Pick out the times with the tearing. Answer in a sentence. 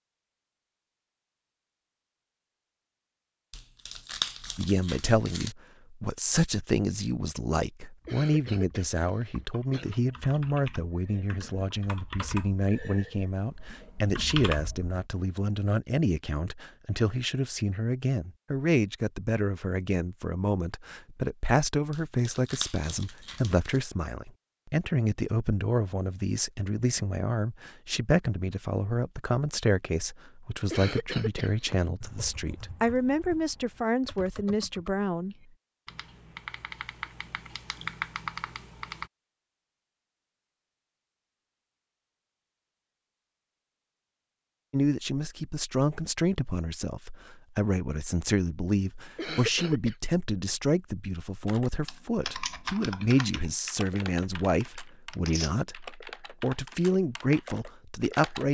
You can hear the tearing from 3.5 to 5.5 s, from 21.9 to 23.8 s and from 55.1 to 55.5 s.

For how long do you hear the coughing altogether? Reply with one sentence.
You can hear the coughing for 4 seconds altogether.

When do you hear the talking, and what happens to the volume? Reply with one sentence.
You can hear the talking from 4.5 to 35.4 s, at a steady volume; and from 44.7 to 58.5 s, at a steady volume.